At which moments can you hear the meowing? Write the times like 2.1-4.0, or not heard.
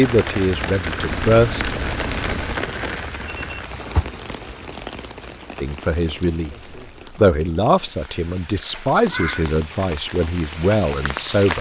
1.1-2.7, 9.1-9.6.